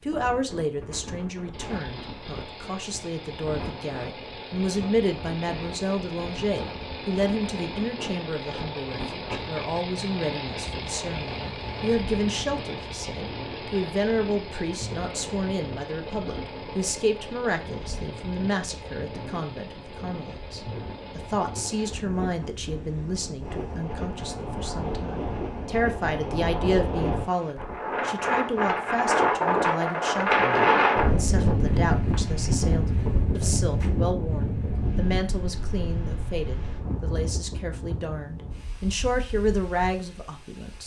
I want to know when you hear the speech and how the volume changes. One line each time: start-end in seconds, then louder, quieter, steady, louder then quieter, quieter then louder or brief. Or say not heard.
0.0-40.8 steady.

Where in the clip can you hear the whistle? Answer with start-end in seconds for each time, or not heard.
not heard.